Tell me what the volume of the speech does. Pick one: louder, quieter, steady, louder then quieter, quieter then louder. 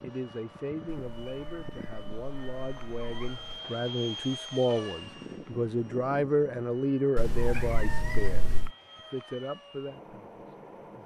louder then quieter.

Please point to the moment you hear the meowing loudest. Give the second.
8 s.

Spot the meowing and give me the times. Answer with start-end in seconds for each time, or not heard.
0.8-3.6, 7.2-8.7.